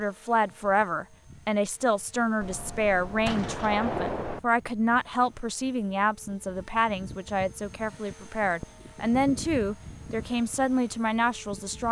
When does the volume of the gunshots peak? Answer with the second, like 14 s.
4 s.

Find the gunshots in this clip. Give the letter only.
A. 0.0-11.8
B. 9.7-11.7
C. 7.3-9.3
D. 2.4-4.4
D.